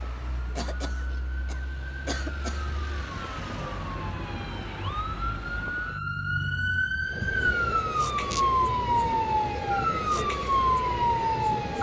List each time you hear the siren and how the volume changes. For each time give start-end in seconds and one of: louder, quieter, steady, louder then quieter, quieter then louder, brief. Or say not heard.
0.0-11.7 louder.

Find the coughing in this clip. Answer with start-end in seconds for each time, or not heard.
0.6-2.6.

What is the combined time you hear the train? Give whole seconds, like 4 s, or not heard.
5 s.